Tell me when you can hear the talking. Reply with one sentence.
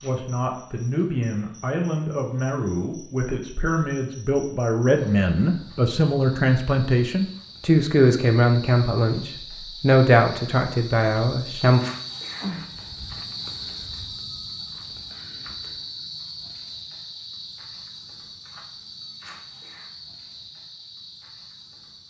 You can hear the talking from 0.0 to 11.8 s.